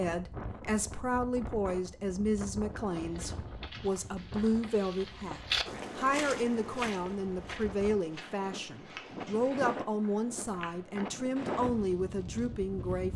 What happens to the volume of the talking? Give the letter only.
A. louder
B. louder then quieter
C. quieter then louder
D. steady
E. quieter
D.